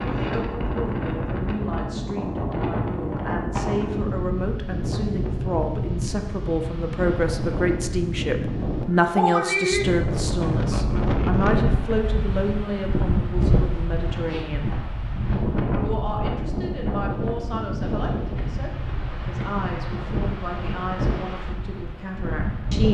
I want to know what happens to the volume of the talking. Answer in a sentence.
The loudness of the talking goes up, then down.